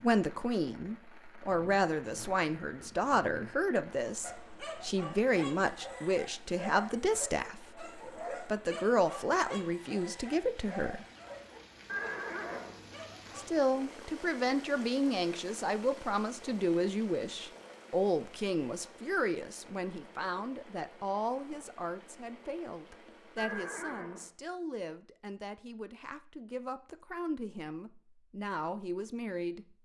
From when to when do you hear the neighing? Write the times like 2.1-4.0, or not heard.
1.4-3.5, 11.8-12.8, 23.4-24.3.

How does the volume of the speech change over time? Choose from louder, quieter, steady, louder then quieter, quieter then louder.
quieter.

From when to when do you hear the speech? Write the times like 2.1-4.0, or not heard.
0.0-11.1, 13.3-29.6.